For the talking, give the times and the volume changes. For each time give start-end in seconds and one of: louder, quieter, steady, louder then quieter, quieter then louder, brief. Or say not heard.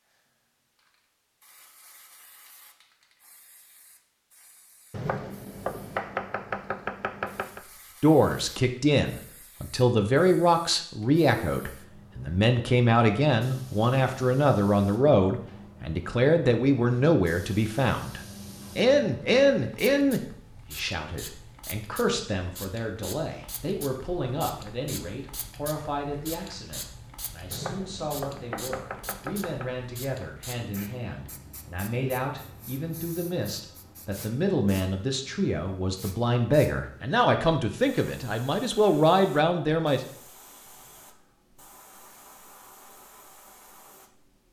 8.0-40.0 quieter then louder.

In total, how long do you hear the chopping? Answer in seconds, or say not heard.
5 s.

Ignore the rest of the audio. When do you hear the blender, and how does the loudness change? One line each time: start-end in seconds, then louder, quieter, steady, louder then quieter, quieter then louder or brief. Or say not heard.
not heard.